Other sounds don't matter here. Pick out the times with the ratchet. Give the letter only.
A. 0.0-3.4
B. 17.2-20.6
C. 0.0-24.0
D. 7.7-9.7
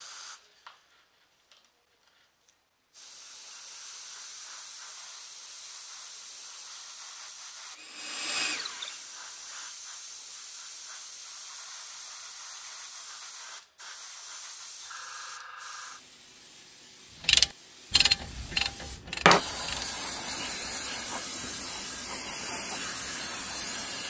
B.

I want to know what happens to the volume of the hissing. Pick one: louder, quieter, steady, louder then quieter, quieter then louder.
louder.